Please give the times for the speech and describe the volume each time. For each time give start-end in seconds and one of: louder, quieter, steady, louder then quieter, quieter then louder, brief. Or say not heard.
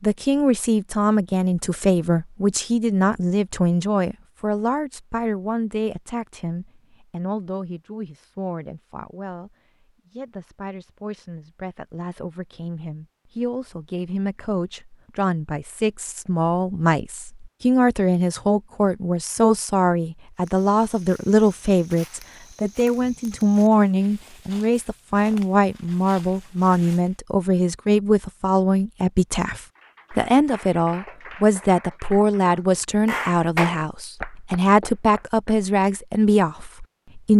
0.0-37.3 quieter then louder.